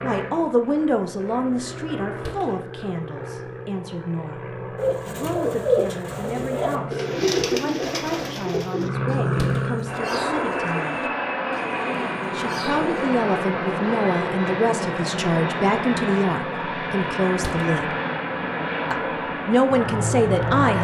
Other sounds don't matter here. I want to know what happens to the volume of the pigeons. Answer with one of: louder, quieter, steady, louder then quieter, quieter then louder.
quieter.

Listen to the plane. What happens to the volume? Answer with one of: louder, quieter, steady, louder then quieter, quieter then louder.
louder.